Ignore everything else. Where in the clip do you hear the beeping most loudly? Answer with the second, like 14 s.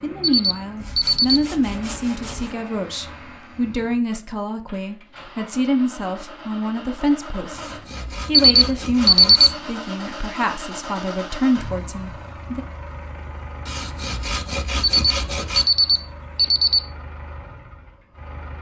9 s.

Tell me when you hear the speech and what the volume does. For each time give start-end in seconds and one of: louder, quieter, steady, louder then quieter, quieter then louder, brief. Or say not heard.
0.0-12.7 steady.